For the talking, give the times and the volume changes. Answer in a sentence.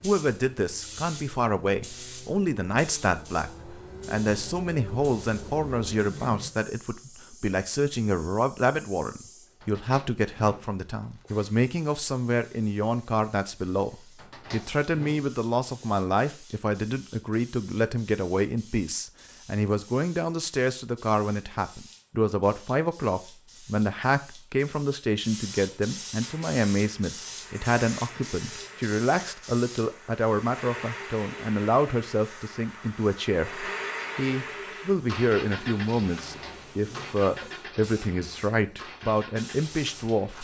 You can hear the talking from 0.0 to 40.4 s, at a steady volume.